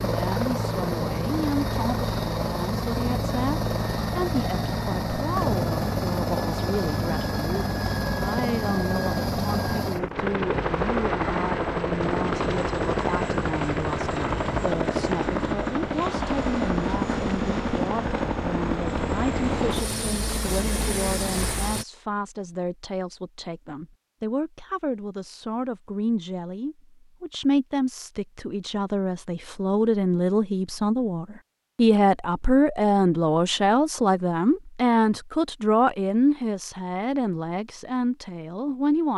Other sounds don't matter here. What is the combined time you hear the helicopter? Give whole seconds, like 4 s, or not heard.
22 s.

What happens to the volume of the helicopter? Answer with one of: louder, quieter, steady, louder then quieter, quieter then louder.
steady.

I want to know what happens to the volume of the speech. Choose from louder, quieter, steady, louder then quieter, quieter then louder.
louder.